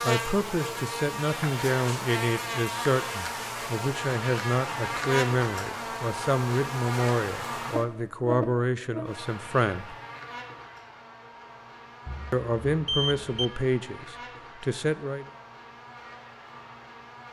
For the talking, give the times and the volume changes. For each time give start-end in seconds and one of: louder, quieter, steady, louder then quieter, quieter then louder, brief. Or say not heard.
0.0-9.9 steady
12.3-15.2 brief.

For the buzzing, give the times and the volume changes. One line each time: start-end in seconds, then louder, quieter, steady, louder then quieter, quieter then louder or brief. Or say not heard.
0.0-17.2 quieter.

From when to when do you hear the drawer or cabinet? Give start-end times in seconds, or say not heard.
not heard.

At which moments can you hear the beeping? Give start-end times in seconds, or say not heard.
12.1-13.5.